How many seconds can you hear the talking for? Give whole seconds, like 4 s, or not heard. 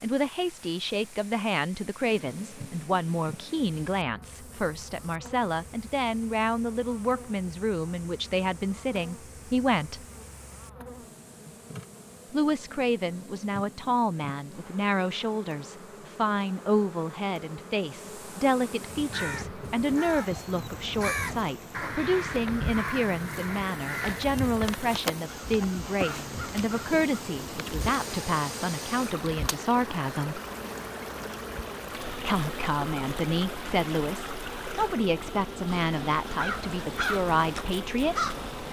34 s.